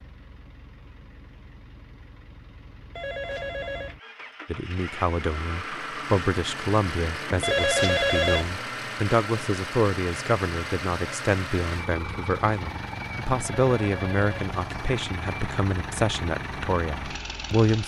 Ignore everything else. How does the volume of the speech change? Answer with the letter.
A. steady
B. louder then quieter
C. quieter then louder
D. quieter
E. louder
A.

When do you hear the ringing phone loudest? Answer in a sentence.
The loudest moment of the ringing phone is at 8 seconds.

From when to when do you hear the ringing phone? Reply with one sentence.
You can hear the ringing phone from 3.0 to 4.0 s, from 7.4 to 8.6 s and from 13.4 to 14.3 s.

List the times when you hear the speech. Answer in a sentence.
You can hear the speech from 4.5 to 17.8 s.